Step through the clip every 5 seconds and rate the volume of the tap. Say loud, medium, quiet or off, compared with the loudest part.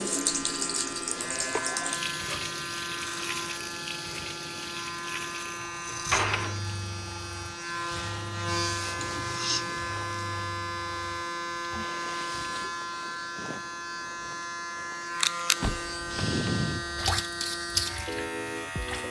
loud, medium, quiet, loud.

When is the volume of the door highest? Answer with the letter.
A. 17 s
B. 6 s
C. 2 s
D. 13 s
B.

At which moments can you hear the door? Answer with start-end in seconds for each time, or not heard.
5.8-6.6, 15.6-17.1.